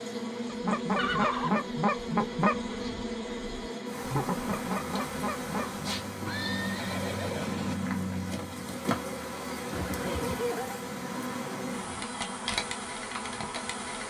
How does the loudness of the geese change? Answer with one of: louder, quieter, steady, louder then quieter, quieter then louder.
quieter then louder.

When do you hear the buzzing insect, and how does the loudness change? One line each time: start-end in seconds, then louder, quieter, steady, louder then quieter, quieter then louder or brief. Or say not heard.
0.0-14.0 steady.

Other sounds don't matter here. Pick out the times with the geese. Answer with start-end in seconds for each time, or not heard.
0.5-6.0.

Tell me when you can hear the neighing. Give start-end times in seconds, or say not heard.
0.9-1.6, 6.2-7.8, 9.7-10.8.